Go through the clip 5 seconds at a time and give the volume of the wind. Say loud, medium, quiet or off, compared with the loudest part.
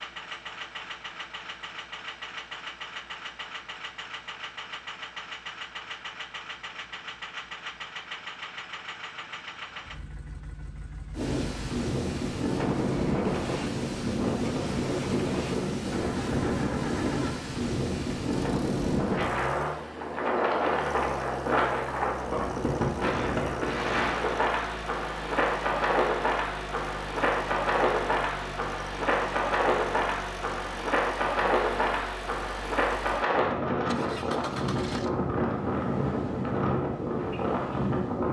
off, off, loud, loud, loud, loud, loud, loud.